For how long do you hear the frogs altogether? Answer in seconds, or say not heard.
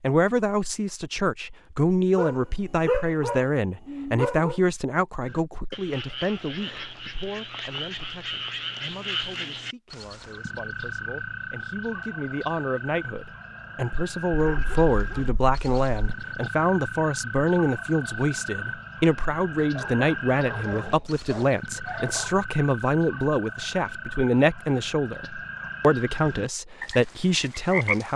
23 s.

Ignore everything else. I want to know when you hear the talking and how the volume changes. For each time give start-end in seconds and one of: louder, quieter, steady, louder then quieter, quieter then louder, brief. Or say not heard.
0.0-28.1 quieter then louder.